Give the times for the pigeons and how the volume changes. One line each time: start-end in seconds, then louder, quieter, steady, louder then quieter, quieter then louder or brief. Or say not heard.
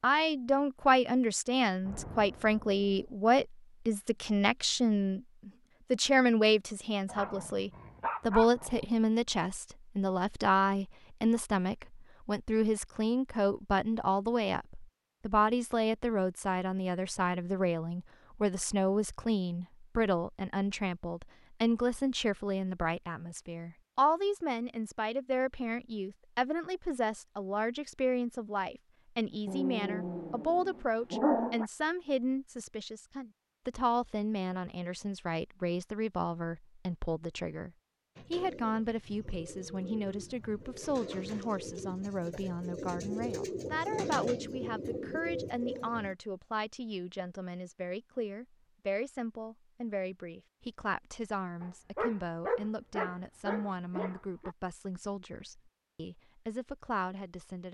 38.1-46.1 louder.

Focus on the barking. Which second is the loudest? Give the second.
31 s.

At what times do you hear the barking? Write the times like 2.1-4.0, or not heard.
7.0-8.8, 29.4-31.6, 51.6-54.5.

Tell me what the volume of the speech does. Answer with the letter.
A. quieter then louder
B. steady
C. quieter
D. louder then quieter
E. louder
C.